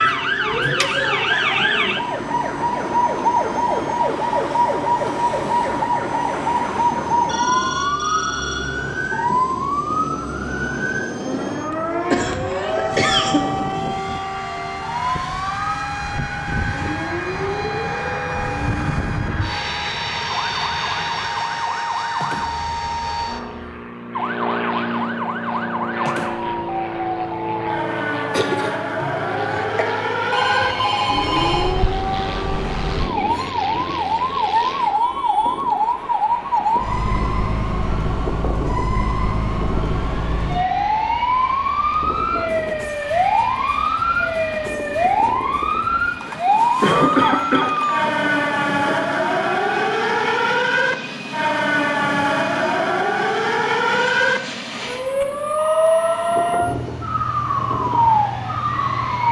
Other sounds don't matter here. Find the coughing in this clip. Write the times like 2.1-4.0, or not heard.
12.1-13.4, 28.3-29.9, 46.8-47.8.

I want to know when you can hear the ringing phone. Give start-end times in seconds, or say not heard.
7.2-8.8, 30.3-31.8, 55.5-56.8.